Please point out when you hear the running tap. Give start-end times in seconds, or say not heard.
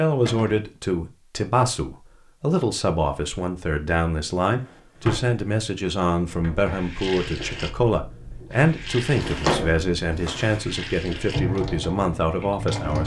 6.5-13.0.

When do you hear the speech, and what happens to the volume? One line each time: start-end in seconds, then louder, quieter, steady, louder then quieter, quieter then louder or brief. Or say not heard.
0.0-13.0 steady.